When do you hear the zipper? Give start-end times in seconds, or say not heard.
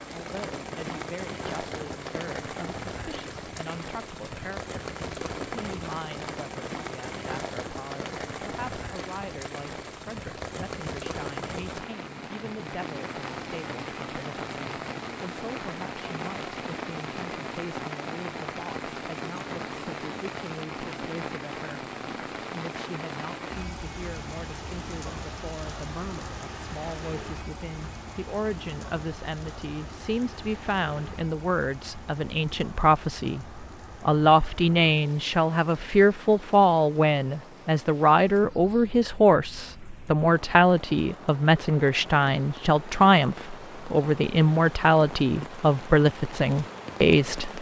not heard.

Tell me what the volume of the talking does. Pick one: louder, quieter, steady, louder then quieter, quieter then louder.
louder.